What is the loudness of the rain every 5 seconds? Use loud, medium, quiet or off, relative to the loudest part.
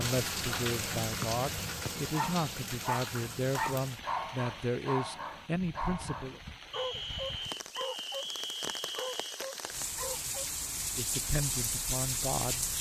loud, medium, loud.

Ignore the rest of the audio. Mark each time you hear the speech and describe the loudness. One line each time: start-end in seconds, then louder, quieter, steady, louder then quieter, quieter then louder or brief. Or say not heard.
0.0-6.4 steady
10.9-12.7 brief.